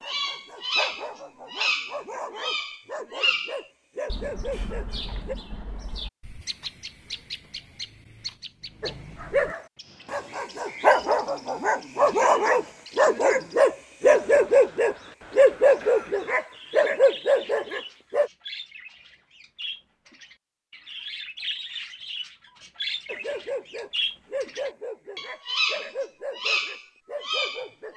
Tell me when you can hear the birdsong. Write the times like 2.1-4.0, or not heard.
0.0-27.9.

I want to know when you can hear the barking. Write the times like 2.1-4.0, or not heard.
0.0-5.3, 8.8-18.3, 23.1-27.9.